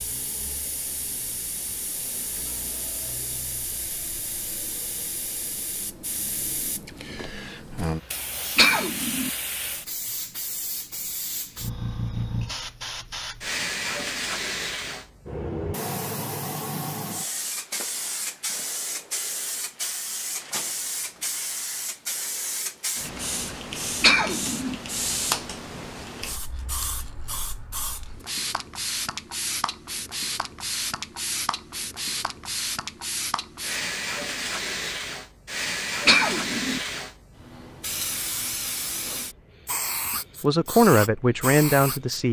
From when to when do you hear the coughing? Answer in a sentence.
You can hear the coughing from 8.6 to 9.3 s, from 24.0 to 24.8 s and from 36.0 to 36.8 s.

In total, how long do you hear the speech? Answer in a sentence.
You can hear the speech for 2 seconds altogether.